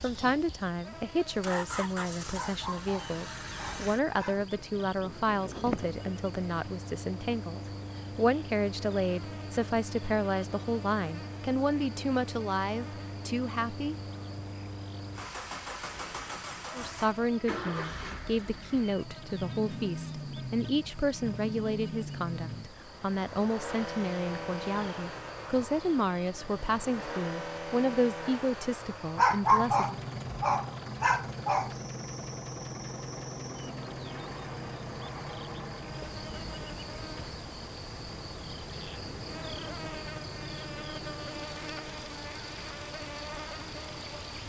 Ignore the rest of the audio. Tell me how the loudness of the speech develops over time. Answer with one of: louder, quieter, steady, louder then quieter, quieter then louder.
steady.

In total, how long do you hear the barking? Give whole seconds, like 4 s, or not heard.
5 s.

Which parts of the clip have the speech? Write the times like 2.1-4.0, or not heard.
0.0-13.9, 16.7-30.0.